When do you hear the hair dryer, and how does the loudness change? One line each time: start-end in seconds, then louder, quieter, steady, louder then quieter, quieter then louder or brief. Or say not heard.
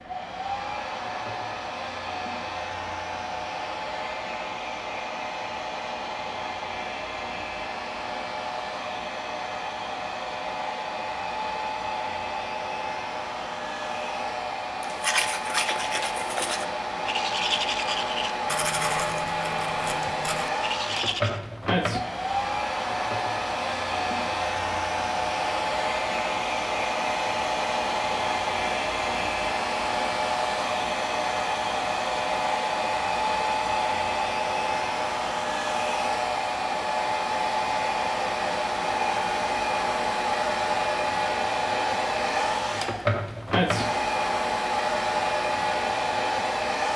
0.0-46.9 louder.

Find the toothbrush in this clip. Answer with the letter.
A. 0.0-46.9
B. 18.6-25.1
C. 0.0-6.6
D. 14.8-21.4
D.